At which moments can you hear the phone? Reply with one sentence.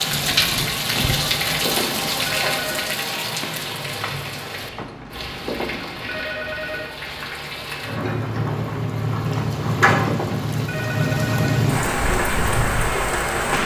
You can hear the phone from 0.8 to 3.0 s, from 4.6 to 6.9 s and from 9.2 to 11.7 s.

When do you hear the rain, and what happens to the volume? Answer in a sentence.
You can hear the rain from 0.0 to 13.6 s, getting quieter then louder.